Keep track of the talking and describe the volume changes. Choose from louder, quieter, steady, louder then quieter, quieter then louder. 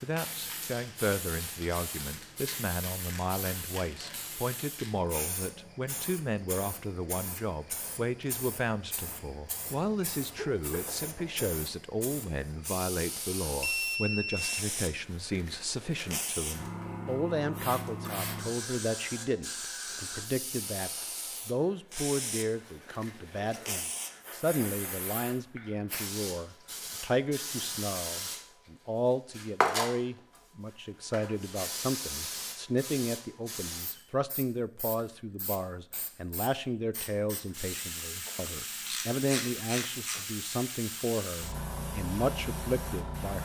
steady.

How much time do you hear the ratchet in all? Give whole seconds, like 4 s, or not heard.
2 s.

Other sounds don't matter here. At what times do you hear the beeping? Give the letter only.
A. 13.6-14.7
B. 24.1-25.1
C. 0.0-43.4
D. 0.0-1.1
A.